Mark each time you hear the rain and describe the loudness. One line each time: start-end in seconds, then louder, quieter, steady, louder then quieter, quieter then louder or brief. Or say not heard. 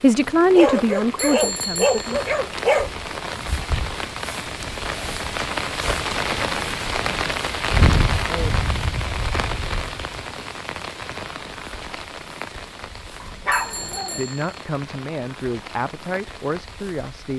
0.0-17.3 louder then quieter.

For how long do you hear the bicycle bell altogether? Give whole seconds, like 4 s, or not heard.
2 s.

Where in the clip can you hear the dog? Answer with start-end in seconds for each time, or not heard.
0.6-2.9, 13.2-14.2.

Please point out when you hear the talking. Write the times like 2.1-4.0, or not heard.
0.0-2.2, 14.1-17.3.